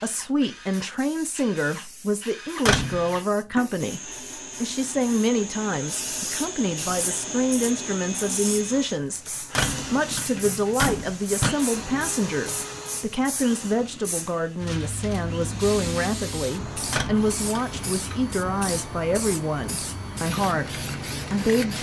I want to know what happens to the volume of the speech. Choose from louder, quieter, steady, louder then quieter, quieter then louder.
steady.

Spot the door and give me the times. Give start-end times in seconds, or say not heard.
2.6-3.1, 9.6-11.6, 16.9-18.0.